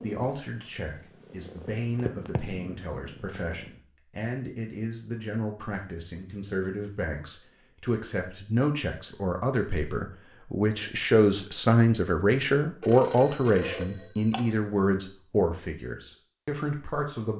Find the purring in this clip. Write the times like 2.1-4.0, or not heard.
0.0-3.8.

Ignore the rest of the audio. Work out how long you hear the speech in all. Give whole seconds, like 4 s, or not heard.
17 s.